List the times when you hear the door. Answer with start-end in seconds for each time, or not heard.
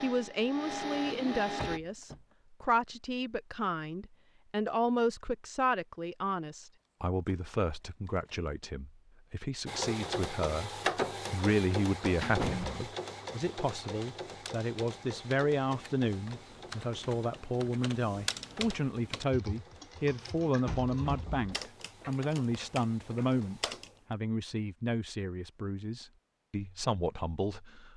1.6-2.1, 12.2-12.8, 20.6-21.5.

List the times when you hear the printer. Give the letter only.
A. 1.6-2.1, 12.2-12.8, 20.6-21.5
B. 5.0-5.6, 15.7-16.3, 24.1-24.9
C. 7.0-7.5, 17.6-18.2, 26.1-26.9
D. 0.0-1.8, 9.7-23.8
D.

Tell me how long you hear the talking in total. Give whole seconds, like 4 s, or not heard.
27 s.